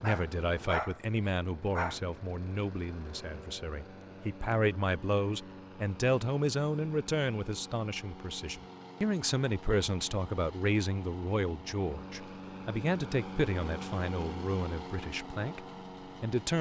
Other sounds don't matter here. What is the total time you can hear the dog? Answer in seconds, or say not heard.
2 s.